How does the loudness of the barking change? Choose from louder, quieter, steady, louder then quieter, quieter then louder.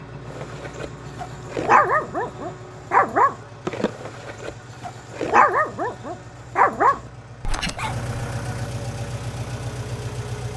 quieter then louder.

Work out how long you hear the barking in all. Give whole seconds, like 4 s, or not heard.
8 s.